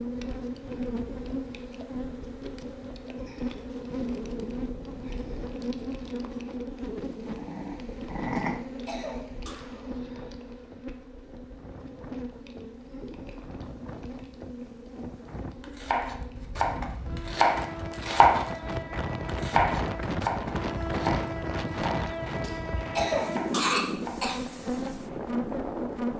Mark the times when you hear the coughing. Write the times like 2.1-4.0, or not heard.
8.3-9.6, 22.4-24.4.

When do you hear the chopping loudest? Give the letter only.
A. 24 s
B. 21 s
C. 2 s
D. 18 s
D.